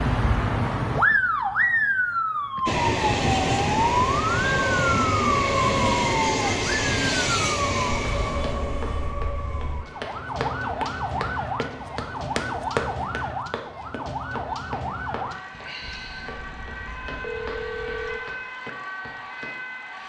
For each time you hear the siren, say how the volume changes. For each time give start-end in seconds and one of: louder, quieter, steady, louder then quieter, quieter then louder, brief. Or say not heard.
0.0-20.0 quieter.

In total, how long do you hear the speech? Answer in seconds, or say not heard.
not heard.